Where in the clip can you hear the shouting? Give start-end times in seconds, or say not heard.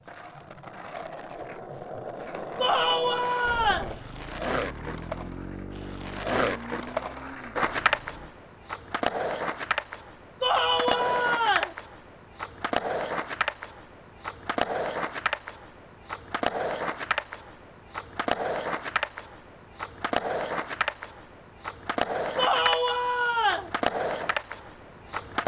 2.6-4.0, 10.4-11.8, 22.4-23.7.